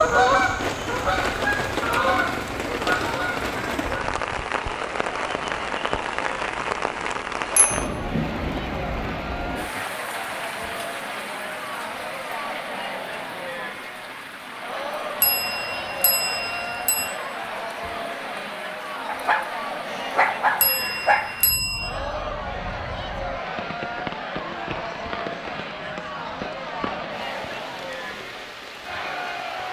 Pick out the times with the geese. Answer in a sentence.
You can hear the geese from 0.0 to 4.0 s.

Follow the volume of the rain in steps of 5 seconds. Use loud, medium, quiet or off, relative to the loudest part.
loud, loud, medium, medium, medium, medium.